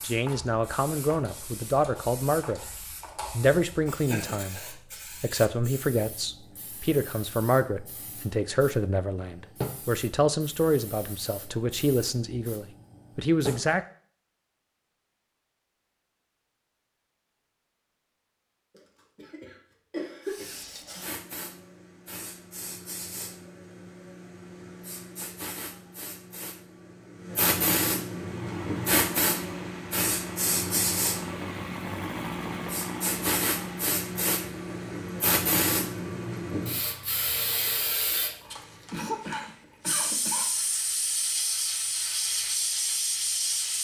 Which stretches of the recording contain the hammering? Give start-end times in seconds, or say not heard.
not heard.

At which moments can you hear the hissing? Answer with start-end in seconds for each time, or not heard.
0.0-13.8, 20.2-43.7.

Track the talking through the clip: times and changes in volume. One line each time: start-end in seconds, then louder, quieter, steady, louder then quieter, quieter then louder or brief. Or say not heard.
0.0-2.6 brief
3.3-13.8 steady.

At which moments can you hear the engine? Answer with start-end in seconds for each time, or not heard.
28.1-38.0.